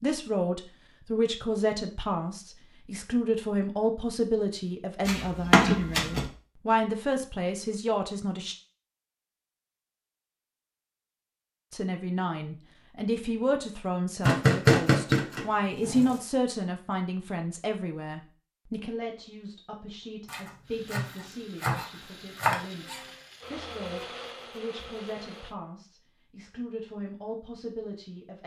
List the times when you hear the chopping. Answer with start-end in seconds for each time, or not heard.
5.0-6.3, 14.2-16.2, 20.2-23.1.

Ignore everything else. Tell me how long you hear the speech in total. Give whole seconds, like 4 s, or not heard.
25 s.